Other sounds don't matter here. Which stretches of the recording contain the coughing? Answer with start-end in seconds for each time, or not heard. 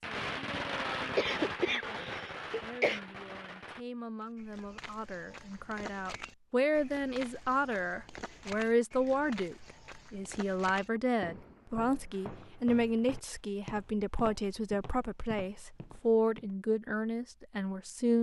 1.1-3.0.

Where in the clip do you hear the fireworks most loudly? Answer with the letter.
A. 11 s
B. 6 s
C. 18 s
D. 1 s
D.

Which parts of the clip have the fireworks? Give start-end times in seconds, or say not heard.
0.0-3.9.